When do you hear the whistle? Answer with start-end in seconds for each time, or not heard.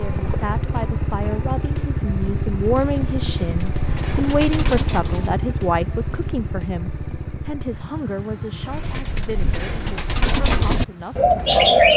not heard.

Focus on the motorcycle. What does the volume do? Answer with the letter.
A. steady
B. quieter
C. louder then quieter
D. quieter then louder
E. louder
B.